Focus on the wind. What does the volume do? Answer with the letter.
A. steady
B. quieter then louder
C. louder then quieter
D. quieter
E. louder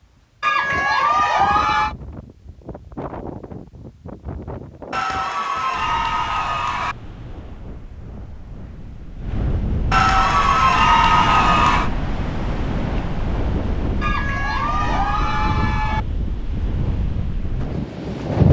E.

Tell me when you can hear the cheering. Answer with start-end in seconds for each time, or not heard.
0.4-1.9, 4.9-7.0, 9.9-11.9, 14.0-16.0.